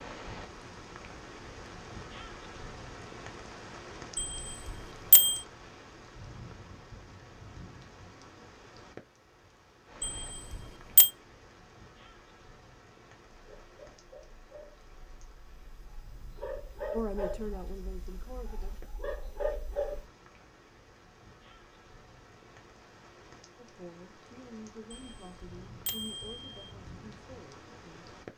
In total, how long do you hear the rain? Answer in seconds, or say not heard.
28 s.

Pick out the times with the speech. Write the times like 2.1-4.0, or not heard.
16.9-18.8, 23.6-28.1.